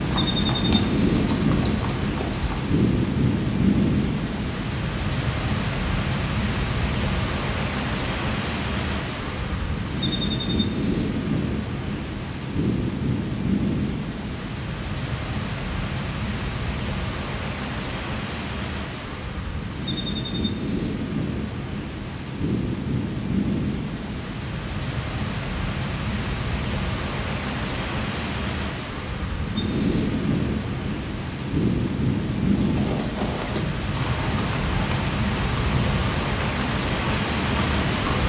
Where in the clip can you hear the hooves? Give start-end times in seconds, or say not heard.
0.0-2.8, 32.6-38.2.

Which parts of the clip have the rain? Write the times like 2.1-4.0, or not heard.
0.0-38.2.